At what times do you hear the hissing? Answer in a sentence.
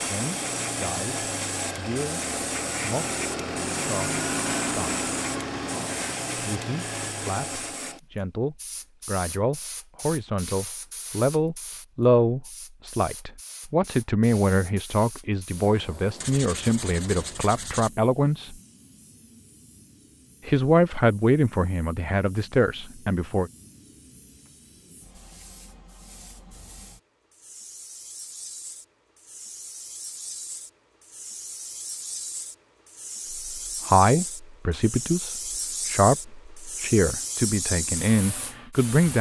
You can hear the hissing from 0.0 to 39.1 s.